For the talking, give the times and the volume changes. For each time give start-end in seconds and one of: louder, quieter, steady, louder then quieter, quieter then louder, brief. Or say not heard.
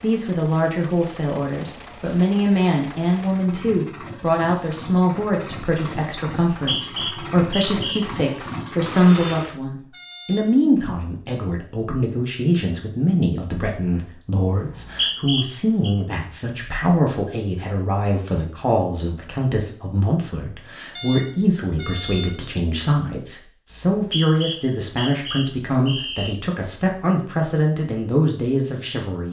0.0-29.2 steady.